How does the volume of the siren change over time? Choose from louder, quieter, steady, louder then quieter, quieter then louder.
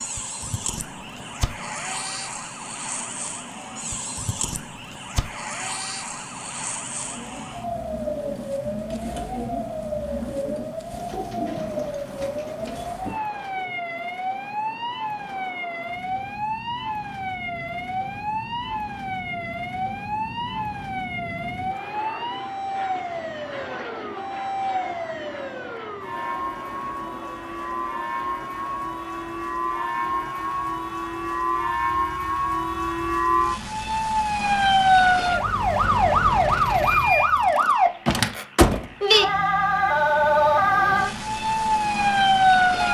louder.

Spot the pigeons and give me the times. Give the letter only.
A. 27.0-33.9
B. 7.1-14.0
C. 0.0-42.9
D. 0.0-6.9
B.